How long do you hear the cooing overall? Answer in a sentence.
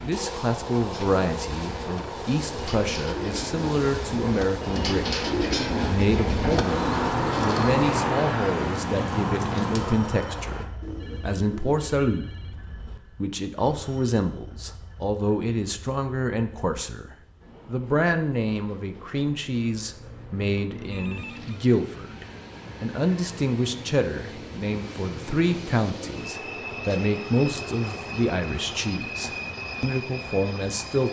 You can hear the cooing for 11 seconds altogether.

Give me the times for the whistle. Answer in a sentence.
You can't hear the whistle here.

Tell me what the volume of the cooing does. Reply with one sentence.
The volume of the cooing goes up, then down.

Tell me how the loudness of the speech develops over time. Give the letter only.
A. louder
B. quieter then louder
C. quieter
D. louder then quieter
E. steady
E.